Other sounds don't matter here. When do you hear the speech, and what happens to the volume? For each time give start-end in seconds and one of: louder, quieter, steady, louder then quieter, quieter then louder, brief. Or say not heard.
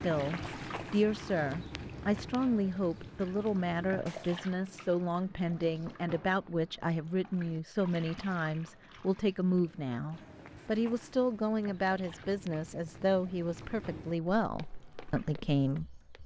0.0-16.2 steady.